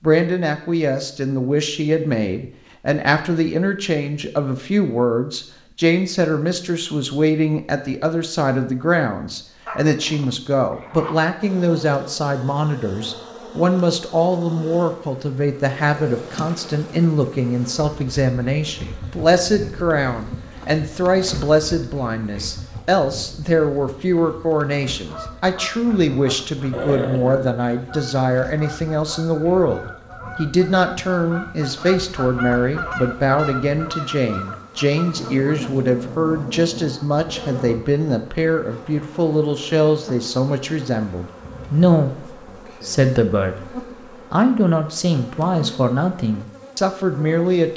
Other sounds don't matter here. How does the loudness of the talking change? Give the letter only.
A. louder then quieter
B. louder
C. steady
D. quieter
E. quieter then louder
C.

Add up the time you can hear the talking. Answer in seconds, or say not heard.
48 s.